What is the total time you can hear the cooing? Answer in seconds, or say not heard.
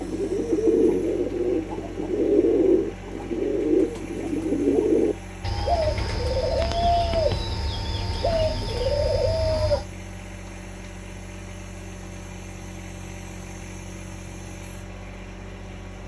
10 s.